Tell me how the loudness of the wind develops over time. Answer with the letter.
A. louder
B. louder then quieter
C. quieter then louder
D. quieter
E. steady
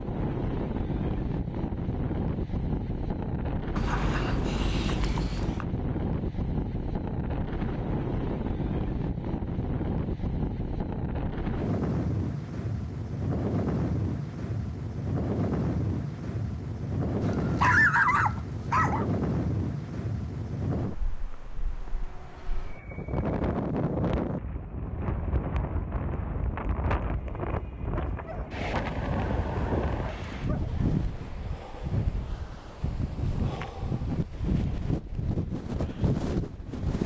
E.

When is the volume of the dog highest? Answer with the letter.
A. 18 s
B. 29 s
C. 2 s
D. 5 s
A.